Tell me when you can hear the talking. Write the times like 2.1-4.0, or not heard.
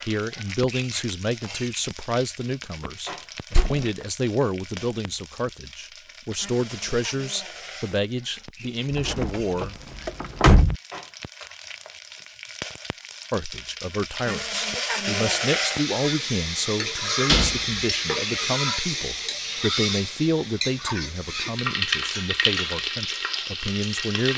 0.0-9.8, 13.3-24.3.